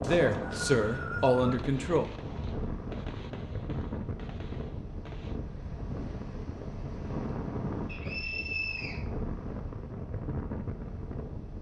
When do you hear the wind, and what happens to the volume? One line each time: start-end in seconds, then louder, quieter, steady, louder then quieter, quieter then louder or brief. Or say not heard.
0.0-11.5 steady.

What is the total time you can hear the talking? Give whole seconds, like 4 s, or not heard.
2 s.